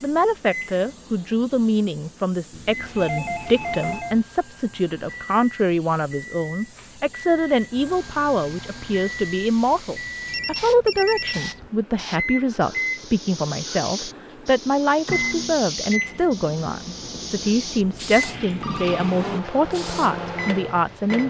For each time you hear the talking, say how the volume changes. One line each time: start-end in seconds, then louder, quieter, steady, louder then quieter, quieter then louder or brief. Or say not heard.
0.0-21.2 steady.